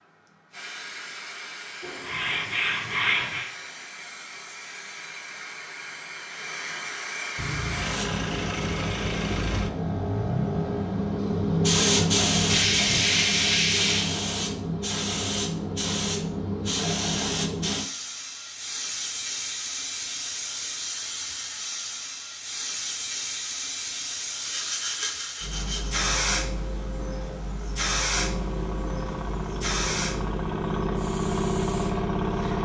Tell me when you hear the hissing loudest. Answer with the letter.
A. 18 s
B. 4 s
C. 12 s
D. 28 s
C.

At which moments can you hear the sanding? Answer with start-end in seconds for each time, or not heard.
1.8-3.5, 12.4-14.1, 24.4-25.9.